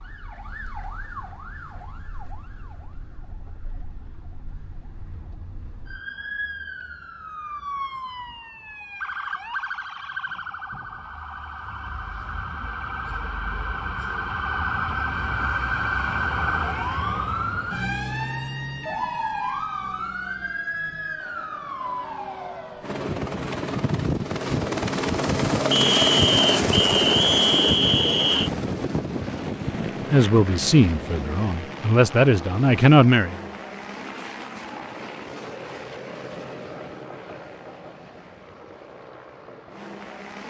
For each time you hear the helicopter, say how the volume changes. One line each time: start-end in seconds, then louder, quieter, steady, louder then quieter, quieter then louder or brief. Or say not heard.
22.8-40.4 quieter.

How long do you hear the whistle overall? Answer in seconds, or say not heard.
3 s.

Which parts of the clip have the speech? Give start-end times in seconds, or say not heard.
30.1-33.4.